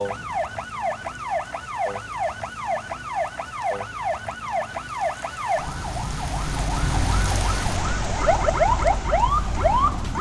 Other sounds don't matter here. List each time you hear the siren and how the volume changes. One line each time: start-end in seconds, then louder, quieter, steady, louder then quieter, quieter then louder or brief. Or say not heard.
0.0-10.1 louder.